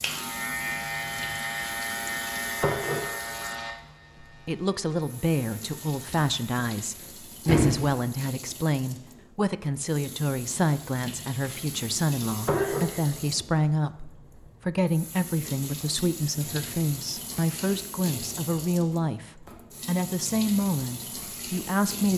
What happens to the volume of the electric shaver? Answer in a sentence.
The loudness of the electric shaver goes down.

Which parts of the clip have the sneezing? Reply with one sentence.
You can hear the sneezing from 12.5 to 13.1 s.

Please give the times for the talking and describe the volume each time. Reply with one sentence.
The talking can be heard from 4.5 to 22.1 s, at a steady volume.